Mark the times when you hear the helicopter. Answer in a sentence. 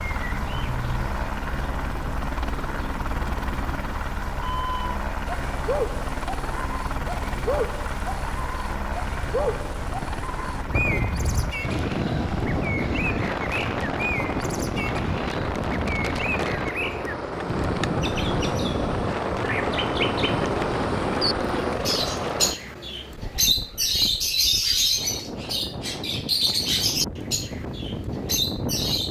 The helicopter can be heard from 0.0 to 22.6 s.